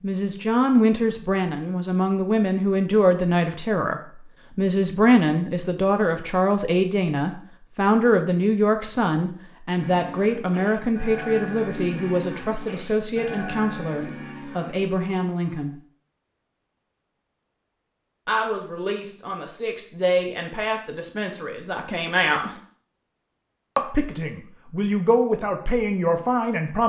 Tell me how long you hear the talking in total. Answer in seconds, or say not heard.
23 s.